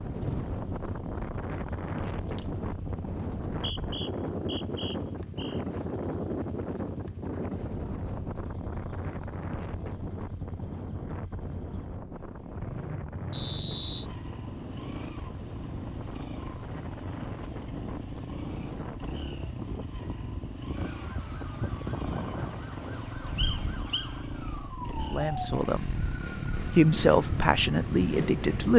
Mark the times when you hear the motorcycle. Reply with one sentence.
You can hear the motorcycle from 0.0 to 28.7 s.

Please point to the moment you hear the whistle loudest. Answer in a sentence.
The volume of the whistle peaks at 14 seconds.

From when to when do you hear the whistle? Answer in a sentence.
The whistle can be heard from 3.5 to 5.6 s, from 13.3 to 14.1 s and from 23.4 to 24.1 s.